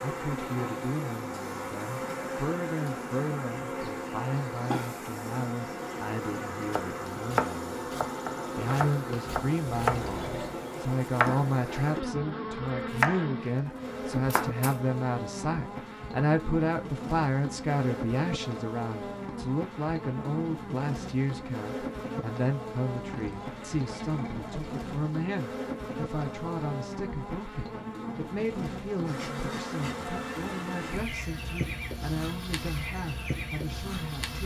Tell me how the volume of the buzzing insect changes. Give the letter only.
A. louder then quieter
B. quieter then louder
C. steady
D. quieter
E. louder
C.